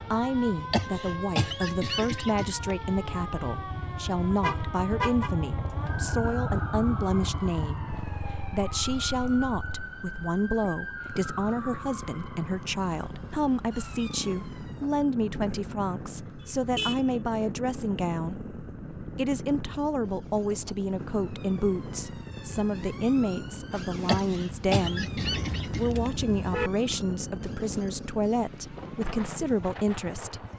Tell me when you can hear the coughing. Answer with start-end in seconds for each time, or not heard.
0.7-2.5, 24.1-26.1.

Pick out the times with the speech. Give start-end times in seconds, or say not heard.
0.1-25.1, 25.8-30.4.